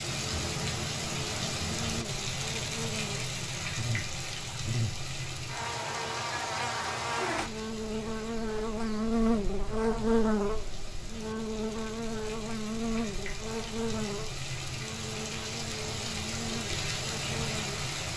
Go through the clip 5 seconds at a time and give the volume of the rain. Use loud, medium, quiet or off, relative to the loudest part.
loud, medium, medium, loud.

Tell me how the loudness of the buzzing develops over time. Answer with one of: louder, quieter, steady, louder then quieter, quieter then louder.
louder then quieter.